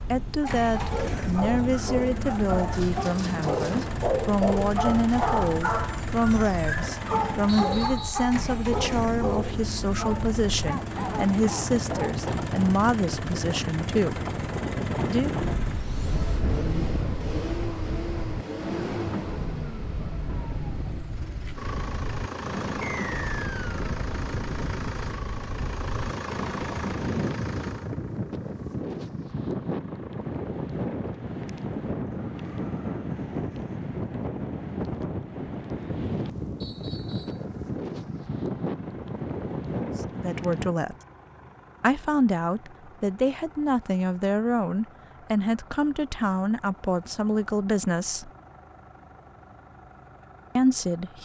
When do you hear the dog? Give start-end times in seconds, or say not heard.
0.4-12.2.